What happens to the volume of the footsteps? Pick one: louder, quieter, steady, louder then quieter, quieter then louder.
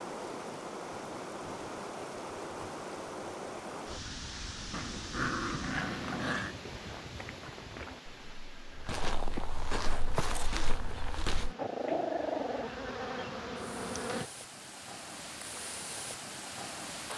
louder.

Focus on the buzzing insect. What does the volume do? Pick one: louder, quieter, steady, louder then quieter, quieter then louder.
louder.